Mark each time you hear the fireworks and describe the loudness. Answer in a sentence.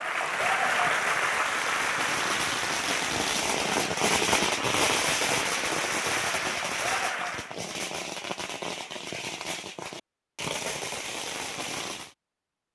You can hear the fireworks from 0.1 to 12.2 s, getting louder then quieter.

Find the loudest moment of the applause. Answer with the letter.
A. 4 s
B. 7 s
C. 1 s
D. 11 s
C.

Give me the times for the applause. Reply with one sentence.
You can hear the applause from 0.0 to 7.5 s.